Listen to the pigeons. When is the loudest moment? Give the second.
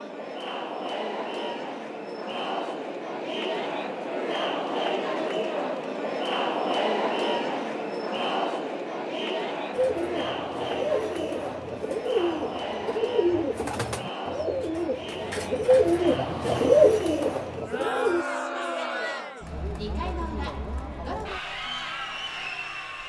17 s.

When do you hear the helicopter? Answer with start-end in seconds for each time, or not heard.
not heard.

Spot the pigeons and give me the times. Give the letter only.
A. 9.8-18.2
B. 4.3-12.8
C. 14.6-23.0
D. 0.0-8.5
A.